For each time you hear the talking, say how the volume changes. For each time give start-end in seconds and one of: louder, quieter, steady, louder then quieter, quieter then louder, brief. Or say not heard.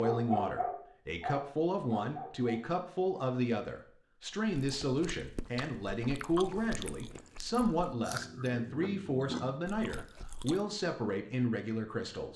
0.0-12.3 steady.